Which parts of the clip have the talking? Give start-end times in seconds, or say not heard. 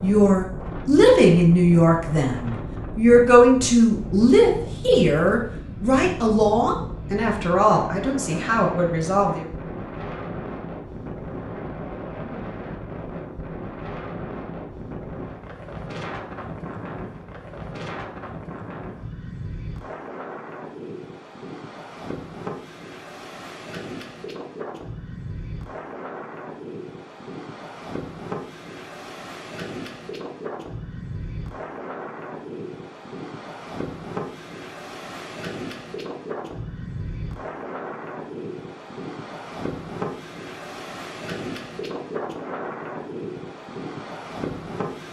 0.0-9.5.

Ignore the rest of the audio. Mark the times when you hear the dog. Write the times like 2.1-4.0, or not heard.
not heard.